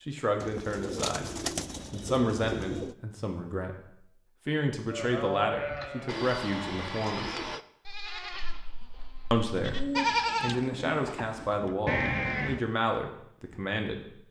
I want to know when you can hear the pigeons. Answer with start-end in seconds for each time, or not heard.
0.4-3.0, 6.0-7.7, 9.6-11.6.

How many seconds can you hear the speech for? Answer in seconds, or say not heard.
12 s.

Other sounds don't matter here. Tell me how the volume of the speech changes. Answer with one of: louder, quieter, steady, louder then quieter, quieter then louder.
steady.